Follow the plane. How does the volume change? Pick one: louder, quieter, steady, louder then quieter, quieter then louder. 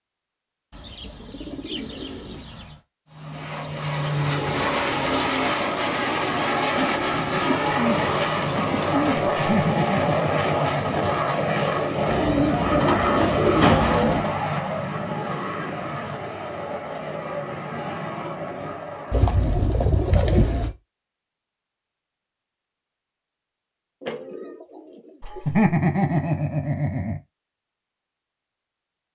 quieter.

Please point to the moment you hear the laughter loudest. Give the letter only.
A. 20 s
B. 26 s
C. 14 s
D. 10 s
B.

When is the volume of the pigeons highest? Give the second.
14 s.